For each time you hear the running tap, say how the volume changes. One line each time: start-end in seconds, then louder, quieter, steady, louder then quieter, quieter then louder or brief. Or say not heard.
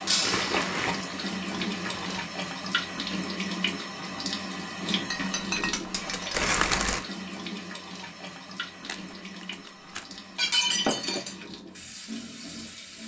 0.0-13.0 quieter.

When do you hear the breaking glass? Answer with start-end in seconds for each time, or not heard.
0.1-0.6, 5.1-6.5, 10.3-11.3.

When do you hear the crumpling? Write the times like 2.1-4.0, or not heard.
0.2-2.2, 6.3-7.0, 8.8-10.5.